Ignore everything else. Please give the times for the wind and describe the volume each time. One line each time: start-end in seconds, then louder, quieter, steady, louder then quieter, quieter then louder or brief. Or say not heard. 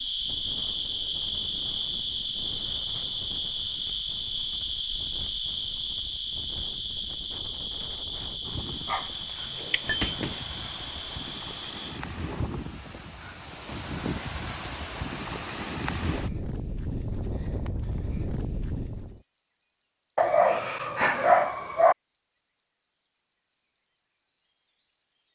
0.0-19.2 louder.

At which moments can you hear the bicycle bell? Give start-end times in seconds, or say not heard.
9.4-10.2.